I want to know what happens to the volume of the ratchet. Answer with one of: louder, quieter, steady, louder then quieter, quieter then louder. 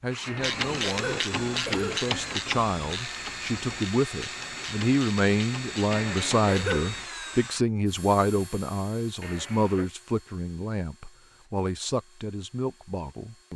quieter.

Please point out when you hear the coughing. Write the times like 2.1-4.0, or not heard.
0.2-2.0, 5.9-6.8, 9.2-9.9.